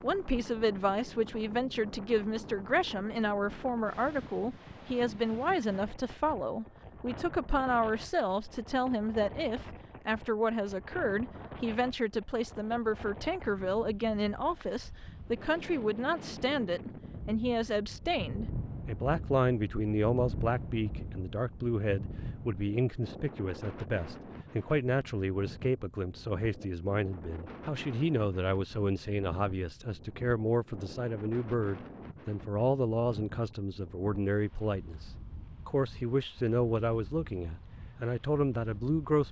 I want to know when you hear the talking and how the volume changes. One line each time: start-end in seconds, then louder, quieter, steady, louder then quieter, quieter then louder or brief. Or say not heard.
0.0-39.2 steady.